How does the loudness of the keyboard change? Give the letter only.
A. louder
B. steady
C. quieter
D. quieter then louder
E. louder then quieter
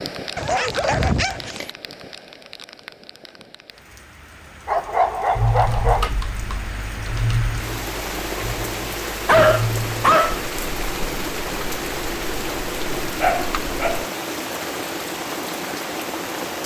C.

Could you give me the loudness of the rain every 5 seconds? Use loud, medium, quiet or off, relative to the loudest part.
medium, loud, loud, loud.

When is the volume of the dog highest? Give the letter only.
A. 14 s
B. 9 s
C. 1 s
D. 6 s
B.